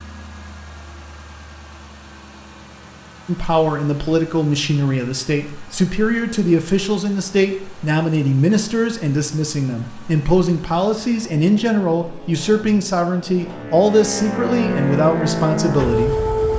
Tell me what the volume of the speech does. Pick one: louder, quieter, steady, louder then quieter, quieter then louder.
steady.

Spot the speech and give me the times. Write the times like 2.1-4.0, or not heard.
3.2-16.1.